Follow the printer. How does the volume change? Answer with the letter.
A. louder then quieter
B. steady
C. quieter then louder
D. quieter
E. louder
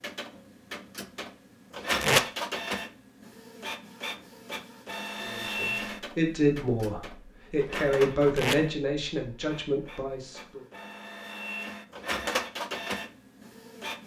C.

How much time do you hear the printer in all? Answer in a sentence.
You can hear the printer for 14 seconds altogether.